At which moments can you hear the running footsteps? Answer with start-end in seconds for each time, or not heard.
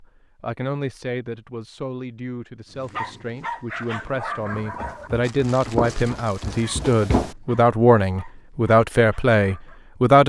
4.4-7.3.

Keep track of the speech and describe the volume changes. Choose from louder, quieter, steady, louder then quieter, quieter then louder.
louder.